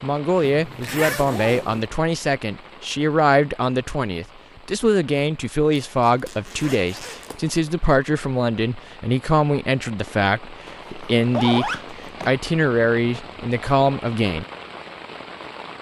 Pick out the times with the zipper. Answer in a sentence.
The zipper can be heard from 0.5 to 1.9 s, from 5.8 to 7.5 s and from 10.7 to 12.3 s.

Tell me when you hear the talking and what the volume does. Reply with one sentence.
The talking can be heard from 0.0 to 14.4 s, at a steady volume.